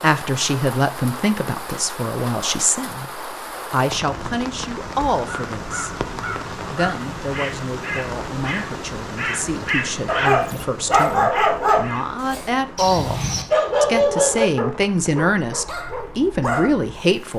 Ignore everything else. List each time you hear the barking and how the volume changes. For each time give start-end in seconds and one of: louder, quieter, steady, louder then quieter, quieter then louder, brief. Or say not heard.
10.1-16.7 quieter.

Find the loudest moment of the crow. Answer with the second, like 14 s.
10 s.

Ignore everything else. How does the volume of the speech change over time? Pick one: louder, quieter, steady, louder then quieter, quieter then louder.
quieter then louder.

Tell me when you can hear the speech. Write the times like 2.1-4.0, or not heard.
0.0-13.2, 13.8-17.3.